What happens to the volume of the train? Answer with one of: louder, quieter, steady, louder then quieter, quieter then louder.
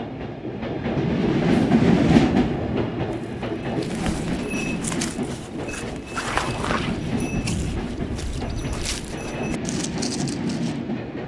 quieter.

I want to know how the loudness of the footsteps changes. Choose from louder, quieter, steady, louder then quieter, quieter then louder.
louder then quieter.